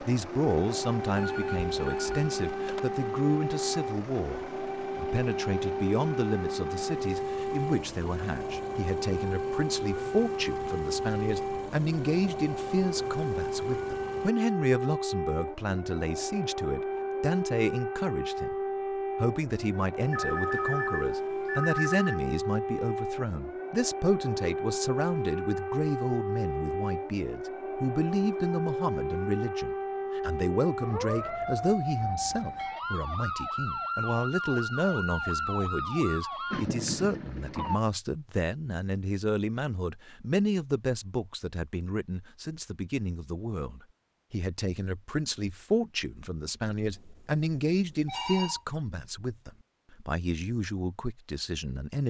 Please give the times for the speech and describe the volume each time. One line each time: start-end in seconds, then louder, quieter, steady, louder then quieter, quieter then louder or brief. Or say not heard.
0.0-52.0 steady.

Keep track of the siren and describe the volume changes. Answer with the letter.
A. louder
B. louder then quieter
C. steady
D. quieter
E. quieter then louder
C.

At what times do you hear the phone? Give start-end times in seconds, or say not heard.
1.1-2.8, 20.1-22.2, 46.9-48.6.